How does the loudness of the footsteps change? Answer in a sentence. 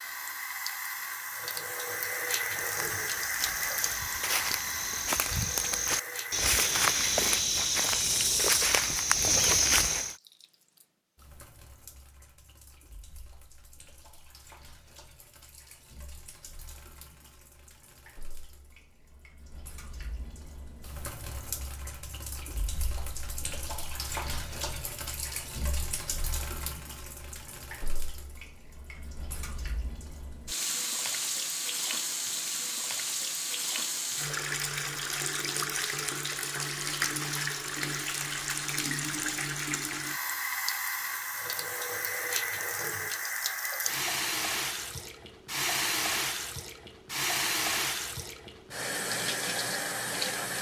The loudness of the footsteps goes up.